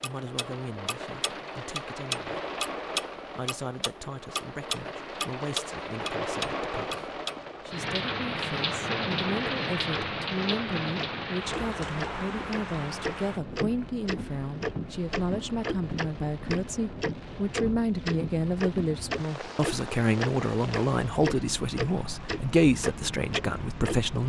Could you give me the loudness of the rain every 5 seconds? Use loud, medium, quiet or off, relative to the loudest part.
medium, loud, loud, medium, medium.